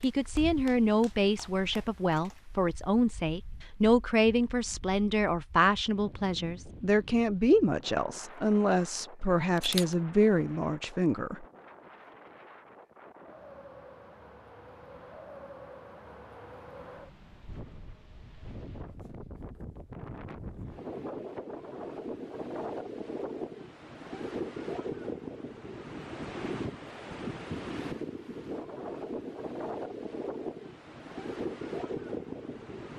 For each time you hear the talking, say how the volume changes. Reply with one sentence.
You can hear the talking from 0.0 to 11.4 s, at a steady volume.